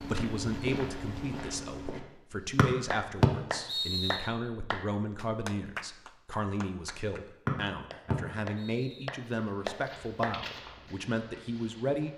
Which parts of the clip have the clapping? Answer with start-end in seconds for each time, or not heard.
2.9-7.2, 7.9-10.3.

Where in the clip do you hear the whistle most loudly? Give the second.
3 s.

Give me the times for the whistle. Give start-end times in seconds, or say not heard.
2.5-4.2, 7.5-9.1.